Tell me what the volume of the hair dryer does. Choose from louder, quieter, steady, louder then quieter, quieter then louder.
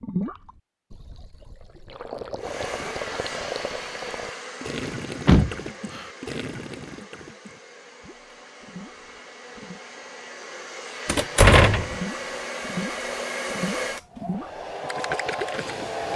quieter then louder.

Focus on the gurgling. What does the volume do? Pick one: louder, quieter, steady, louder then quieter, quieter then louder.
steady.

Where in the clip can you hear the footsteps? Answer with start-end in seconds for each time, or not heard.
not heard.